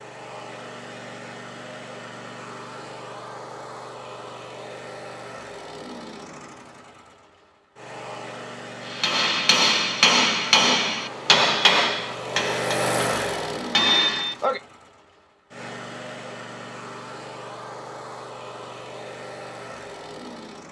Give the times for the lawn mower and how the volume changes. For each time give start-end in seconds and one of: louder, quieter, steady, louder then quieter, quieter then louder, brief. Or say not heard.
0.0-20.6 louder then quieter.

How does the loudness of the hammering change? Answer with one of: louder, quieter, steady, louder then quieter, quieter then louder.
quieter then louder.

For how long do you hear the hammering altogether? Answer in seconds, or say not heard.
6 s.